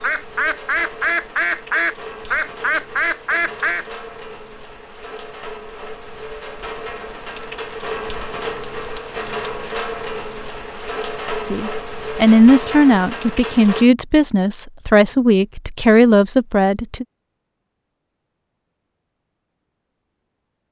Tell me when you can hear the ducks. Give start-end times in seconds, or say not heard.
0.0-3.9.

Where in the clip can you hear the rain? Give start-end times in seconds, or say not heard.
0.0-13.9.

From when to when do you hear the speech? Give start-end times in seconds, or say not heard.
11.4-17.1.